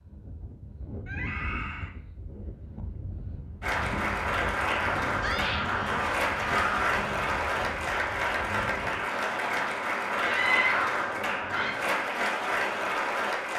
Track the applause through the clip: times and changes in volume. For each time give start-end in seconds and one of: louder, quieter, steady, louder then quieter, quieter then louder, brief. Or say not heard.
3.6-13.5 steady.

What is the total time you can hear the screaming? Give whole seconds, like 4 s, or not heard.
4 s.